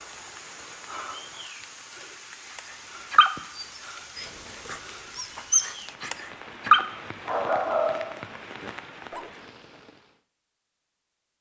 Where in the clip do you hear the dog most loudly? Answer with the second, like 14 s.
7 s.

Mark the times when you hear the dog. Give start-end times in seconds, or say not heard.
2.5-9.3.